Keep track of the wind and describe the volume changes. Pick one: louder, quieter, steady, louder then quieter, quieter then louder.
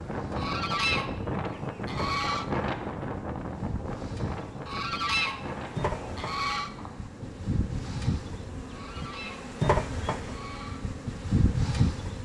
quieter.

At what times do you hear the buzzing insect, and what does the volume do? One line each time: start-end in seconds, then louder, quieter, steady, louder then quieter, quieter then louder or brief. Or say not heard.
0.0-12.2 louder.